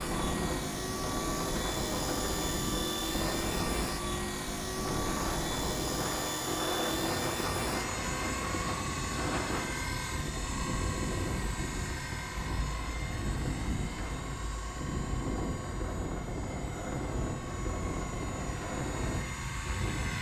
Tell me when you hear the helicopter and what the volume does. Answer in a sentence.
The helicopter can be heard from 0.0 to 20.1 s, getting quieter.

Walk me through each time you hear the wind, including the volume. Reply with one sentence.
You can hear the wind from 0.0 to 20.1 s, at a steady volume.